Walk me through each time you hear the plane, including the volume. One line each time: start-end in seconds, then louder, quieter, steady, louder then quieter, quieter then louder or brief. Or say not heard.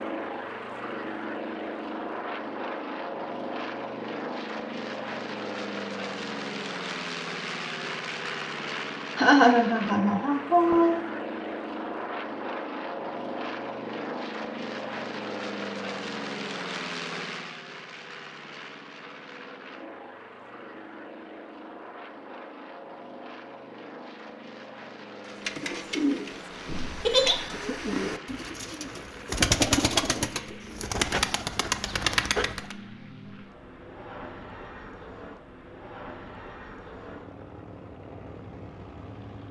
0.0-39.4 quieter.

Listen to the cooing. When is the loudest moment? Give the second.
30 s.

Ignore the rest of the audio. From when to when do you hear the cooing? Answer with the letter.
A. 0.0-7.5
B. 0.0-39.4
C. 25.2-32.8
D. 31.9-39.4
C.